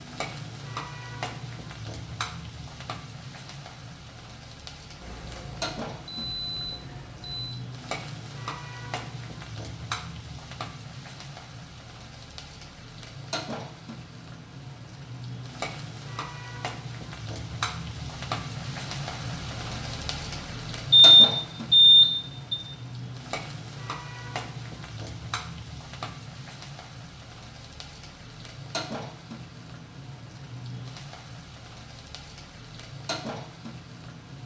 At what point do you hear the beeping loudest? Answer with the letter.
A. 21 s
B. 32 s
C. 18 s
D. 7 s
A.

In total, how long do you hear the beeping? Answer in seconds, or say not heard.
4 s.